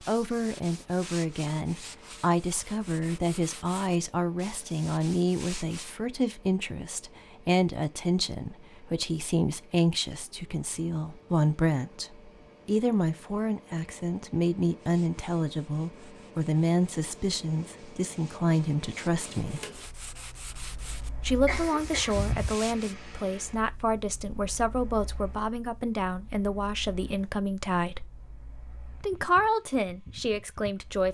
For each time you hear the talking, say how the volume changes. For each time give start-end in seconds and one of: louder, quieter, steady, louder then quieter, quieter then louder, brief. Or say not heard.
0.1-19.6 steady
21.2-28.1 steady
29.0-31.0 brief.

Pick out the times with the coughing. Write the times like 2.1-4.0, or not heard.
21.4-22.3.